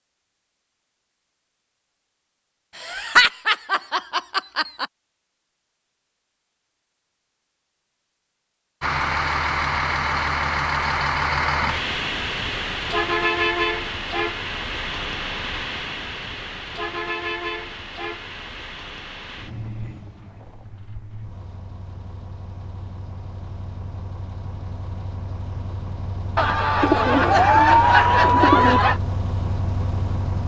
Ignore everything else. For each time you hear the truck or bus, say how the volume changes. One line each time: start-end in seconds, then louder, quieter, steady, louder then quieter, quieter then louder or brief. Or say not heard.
8.8-30.4 quieter then louder.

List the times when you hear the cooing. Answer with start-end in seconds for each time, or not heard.
26.8-28.8.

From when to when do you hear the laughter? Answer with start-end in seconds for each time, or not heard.
2.8-4.8, 26.4-29.0.